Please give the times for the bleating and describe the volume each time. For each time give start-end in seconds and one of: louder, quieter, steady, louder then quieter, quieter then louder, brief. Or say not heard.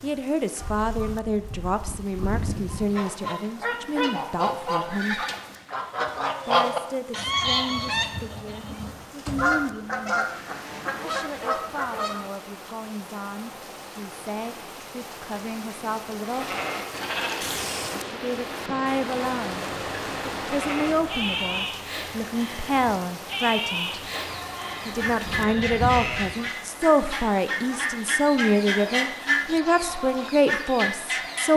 16.2-26.4 steady.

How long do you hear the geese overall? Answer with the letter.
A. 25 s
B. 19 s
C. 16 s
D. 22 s
B.